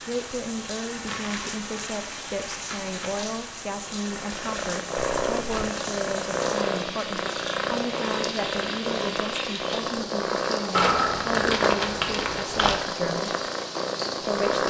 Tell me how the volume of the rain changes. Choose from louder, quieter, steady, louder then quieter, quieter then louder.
steady.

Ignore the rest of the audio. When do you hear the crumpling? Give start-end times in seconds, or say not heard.
1.1-3.1, 5.0-5.7, 10.7-12.8.